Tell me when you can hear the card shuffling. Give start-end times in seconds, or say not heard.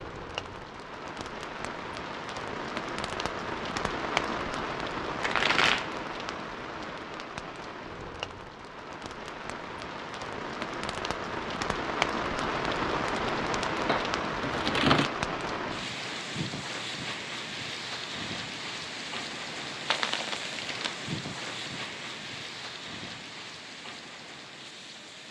5.2-6.0, 13.8-15.1, 19.9-20.9.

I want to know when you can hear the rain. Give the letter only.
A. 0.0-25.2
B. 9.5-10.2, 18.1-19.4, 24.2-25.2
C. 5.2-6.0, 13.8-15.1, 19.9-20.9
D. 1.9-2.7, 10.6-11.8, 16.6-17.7
A.